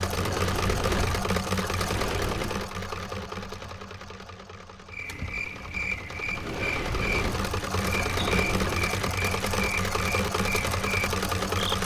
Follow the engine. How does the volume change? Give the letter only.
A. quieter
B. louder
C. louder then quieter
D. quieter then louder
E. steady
D.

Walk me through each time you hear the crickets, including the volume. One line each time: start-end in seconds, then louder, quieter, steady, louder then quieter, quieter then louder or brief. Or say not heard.
4.8-11.8 steady.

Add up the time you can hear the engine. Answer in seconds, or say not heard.
12 s.